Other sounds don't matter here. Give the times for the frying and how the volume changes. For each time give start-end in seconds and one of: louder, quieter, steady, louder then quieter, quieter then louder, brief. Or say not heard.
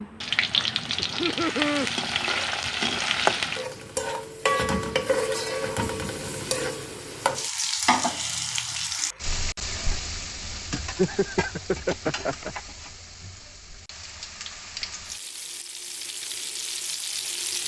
0.0-17.6 quieter.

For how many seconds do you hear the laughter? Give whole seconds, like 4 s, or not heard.
3 s.